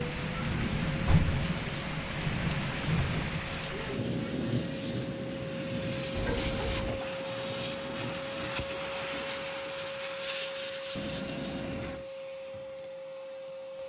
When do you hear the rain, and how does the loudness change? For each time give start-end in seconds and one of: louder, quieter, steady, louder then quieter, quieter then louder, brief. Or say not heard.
0.0-8.8 quieter.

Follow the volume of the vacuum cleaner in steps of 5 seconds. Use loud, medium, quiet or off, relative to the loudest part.
medium, loud, loud.